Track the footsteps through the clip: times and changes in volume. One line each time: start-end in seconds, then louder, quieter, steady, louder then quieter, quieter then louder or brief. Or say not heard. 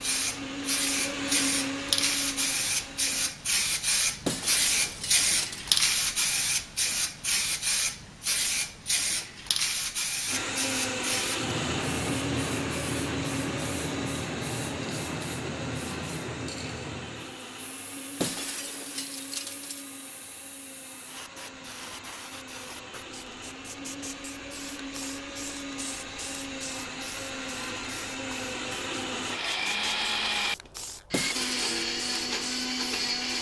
not heard.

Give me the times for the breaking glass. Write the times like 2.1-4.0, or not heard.
4.2-5.8, 18.2-19.9, 31.1-31.6.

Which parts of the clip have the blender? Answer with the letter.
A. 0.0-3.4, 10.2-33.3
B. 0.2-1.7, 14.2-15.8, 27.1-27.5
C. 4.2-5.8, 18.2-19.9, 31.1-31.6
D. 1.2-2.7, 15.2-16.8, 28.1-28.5
A.